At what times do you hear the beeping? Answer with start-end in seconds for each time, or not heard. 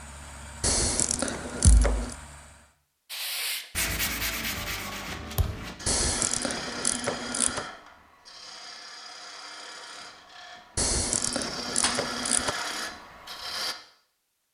not heard.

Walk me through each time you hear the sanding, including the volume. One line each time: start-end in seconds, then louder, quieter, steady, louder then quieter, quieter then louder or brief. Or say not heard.
3.1-13.8 quieter then louder.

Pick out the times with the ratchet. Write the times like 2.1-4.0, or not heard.
0.6-2.1, 5.8-7.7, 10.8-12.6.